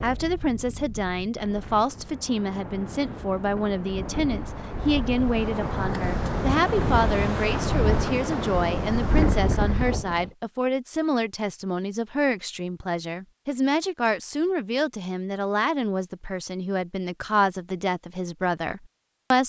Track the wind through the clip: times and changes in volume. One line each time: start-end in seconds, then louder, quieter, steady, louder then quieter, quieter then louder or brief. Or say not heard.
0.0-10.3 louder.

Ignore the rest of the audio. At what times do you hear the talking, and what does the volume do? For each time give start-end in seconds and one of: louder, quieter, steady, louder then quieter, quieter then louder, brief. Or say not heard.
0.0-19.4 steady.